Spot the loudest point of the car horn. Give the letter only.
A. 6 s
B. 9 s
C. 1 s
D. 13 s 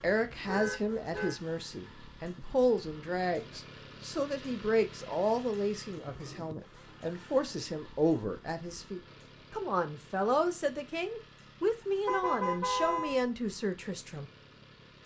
D.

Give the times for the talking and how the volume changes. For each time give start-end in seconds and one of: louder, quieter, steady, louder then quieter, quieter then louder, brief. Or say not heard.
0.0-14.3 steady.